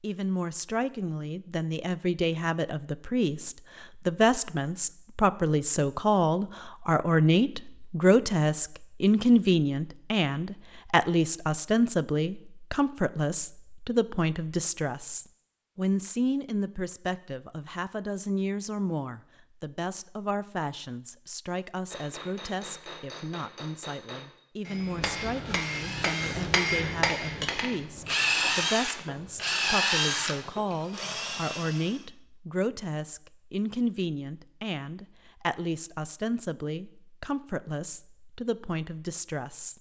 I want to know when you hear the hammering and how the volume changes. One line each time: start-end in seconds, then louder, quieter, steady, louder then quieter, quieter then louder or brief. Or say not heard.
21.9-27.8 louder.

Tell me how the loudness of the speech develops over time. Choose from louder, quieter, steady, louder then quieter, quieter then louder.
quieter.